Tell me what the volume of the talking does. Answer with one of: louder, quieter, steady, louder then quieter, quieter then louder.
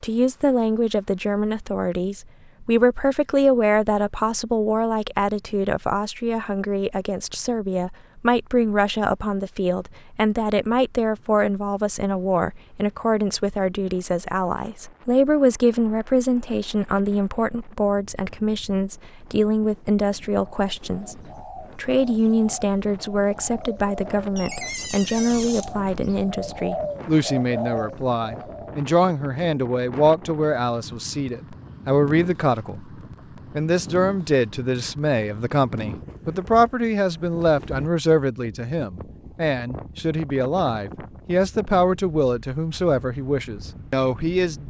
steady.